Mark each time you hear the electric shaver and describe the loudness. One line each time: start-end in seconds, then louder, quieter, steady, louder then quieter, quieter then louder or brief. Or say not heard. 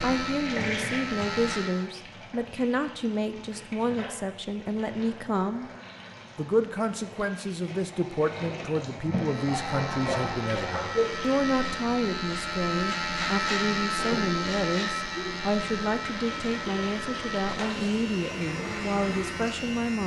0.0-1.9 brief
9.0-20.0 louder then quieter.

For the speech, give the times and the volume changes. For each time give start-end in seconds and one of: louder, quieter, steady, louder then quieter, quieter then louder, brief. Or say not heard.
0.0-5.7 steady
6.3-20.0 steady.